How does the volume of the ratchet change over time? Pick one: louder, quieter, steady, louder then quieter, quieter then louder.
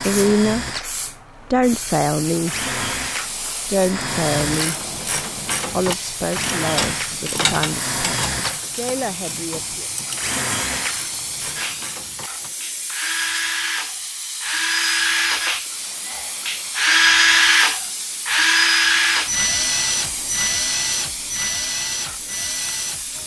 quieter.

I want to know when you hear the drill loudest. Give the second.
17 s.